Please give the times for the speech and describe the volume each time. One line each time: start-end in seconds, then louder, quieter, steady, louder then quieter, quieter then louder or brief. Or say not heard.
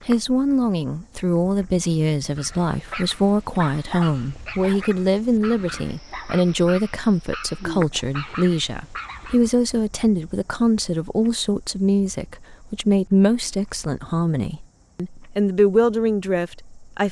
0.1-17.0 steady.